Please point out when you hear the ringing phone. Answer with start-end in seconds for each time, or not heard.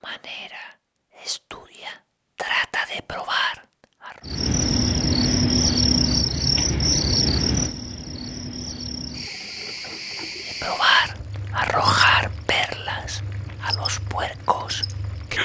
not heard.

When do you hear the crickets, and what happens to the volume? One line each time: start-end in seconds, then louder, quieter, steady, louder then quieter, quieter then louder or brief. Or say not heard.
4.2-15.4 quieter.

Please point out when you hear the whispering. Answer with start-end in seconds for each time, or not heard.
0.0-4.2, 10.4-15.4.